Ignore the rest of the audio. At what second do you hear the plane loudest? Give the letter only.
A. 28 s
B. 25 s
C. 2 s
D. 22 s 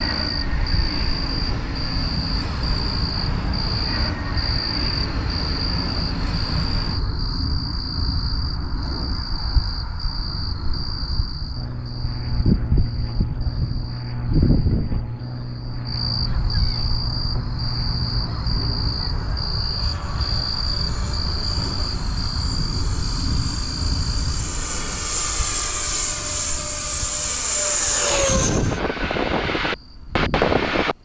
A.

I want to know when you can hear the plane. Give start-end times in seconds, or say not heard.
0.0-7.0, 11.5-30.9.